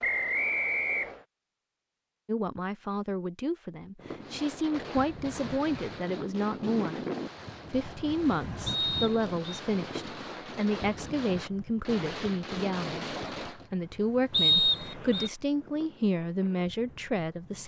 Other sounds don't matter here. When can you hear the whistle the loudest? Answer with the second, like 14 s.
15 s.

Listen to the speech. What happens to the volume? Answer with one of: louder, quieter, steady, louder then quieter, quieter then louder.
steady.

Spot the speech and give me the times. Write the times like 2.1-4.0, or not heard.
2.2-7.0, 7.7-17.6.